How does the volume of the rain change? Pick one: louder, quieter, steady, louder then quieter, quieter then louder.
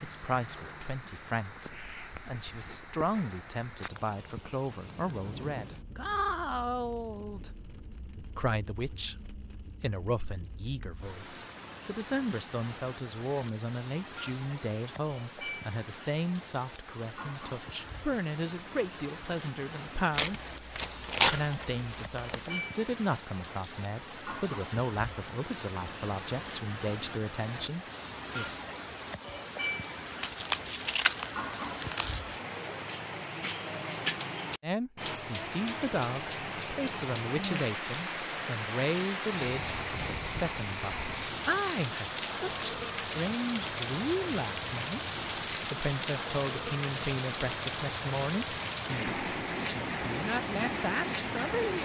louder.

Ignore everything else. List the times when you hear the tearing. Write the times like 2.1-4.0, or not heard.
20.1-22.6, 30.2-32.2.